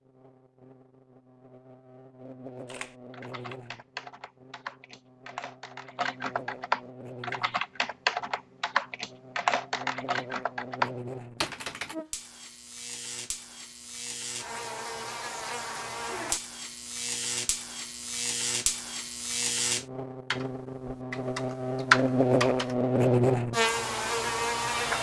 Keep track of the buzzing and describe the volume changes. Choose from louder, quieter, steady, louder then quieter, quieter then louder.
louder.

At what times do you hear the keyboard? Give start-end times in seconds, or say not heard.
2.6-11.9, 20.3-22.8.